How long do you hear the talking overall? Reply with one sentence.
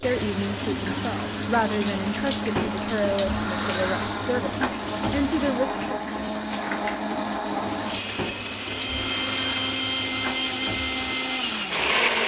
The talking can be heard for 6 seconds in total.